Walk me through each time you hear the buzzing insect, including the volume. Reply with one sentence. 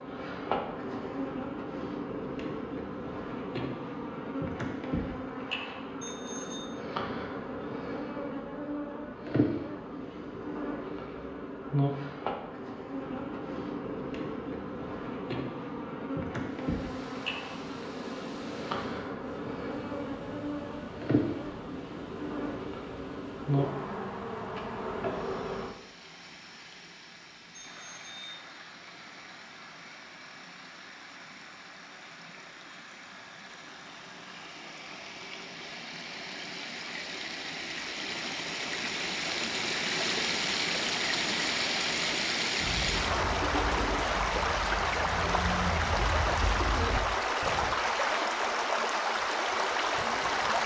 The buzzing insect can be heard from 0.0 to 25.7 s, at a steady volume.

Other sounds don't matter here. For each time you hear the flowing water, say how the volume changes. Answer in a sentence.
The flowing water can be heard from 16.4 to 50.6 s, getting louder.